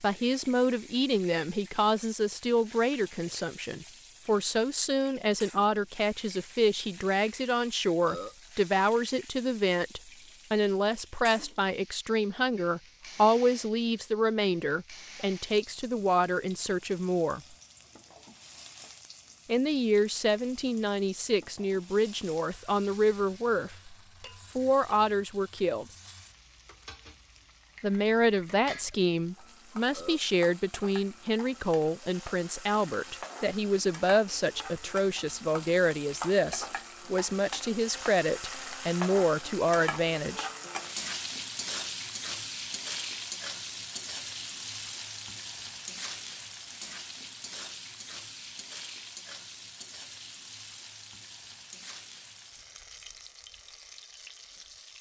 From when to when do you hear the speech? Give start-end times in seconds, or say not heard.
0.0-17.4, 19.4-23.9, 24.6-25.9, 27.8-40.5.